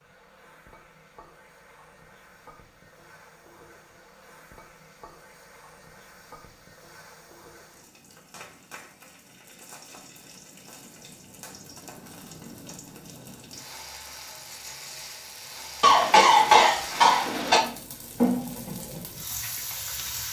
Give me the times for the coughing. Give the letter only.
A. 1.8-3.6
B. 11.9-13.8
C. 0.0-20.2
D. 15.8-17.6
D.